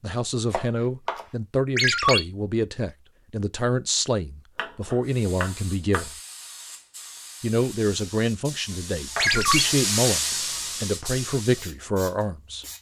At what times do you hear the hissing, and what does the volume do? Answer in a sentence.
The hissing can be heard from 5.0 to 12.7 s, getting louder then quieter.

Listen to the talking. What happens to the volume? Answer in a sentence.
The loudness of the talking stays about the same.